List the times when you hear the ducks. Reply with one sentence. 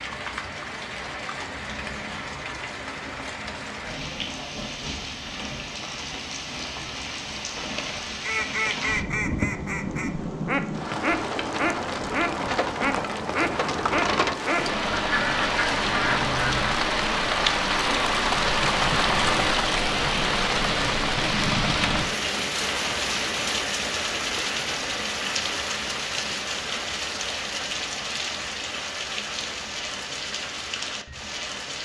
The ducks can be heard from 8.2 to 16.9 s.